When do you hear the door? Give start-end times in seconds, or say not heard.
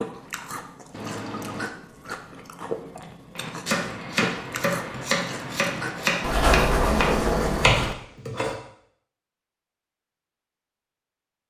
6.2-8.0.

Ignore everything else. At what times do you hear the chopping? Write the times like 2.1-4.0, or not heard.
3.4-8.6.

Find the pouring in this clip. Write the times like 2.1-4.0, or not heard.
0.9-1.7.